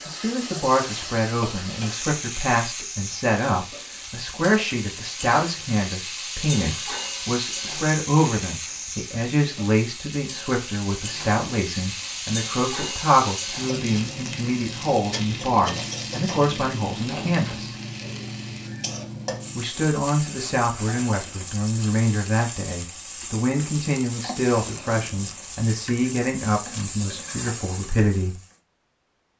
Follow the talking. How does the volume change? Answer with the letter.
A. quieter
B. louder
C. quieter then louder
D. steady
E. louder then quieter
D.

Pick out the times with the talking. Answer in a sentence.
You can hear the talking from 0.1 to 17.8 s and from 19.6 to 28.4 s.